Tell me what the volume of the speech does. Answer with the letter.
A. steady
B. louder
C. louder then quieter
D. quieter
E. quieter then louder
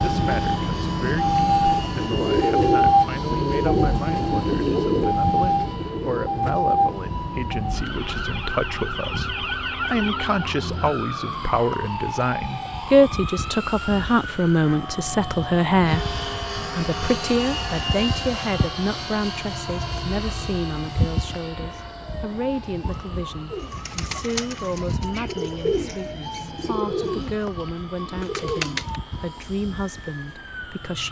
C.